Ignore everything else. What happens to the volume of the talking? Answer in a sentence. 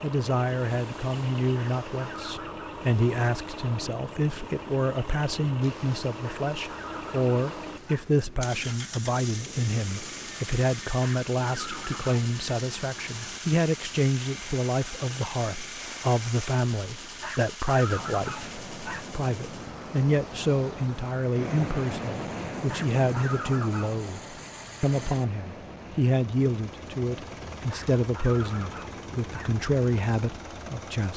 The loudness of the talking stays about the same.